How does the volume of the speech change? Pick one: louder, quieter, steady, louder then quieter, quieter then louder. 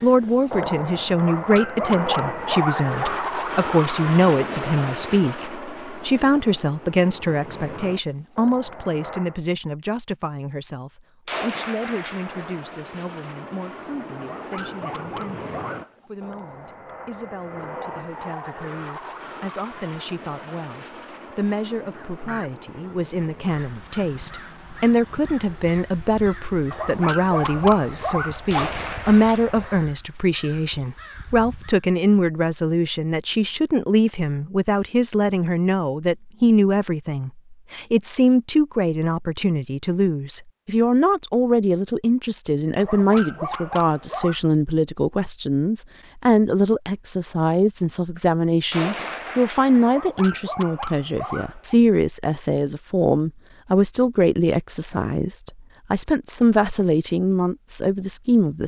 quieter then louder.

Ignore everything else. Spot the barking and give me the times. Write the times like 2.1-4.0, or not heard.
1.1-3.2, 14.2-16.1, 26.7-28.7, 42.8-44.4, 49.9-51.8.